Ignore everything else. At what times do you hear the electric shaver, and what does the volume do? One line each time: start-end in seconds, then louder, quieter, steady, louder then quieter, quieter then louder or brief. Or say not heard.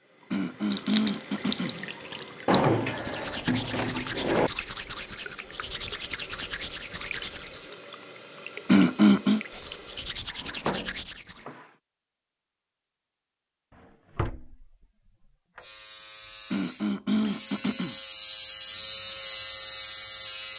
15.6-20.5 louder.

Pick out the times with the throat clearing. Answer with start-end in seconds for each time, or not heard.
0.3-1.8, 8.7-9.4, 16.5-17.9.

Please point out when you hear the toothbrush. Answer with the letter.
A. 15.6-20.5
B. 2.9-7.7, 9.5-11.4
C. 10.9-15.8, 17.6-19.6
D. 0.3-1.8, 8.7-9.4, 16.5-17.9
B.